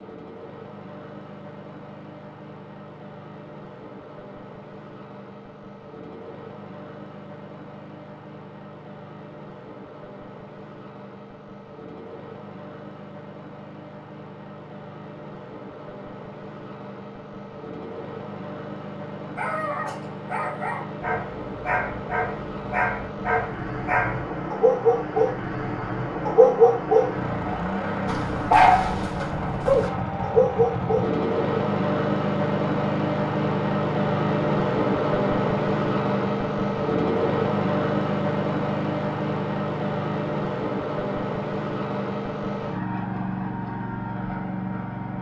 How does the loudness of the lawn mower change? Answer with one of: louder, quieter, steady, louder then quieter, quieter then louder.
louder.